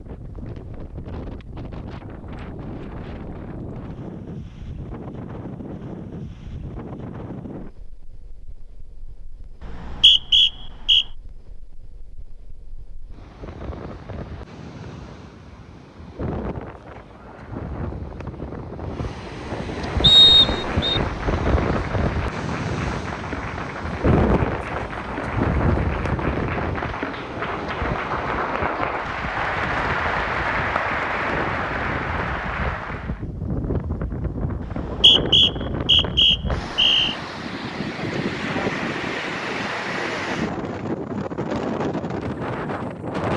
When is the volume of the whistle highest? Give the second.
20 s.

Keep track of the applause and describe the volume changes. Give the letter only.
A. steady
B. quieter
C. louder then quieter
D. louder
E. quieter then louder
D.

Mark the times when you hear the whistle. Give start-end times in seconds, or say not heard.
9.6-11.1, 20.0-21.0, 34.6-37.1.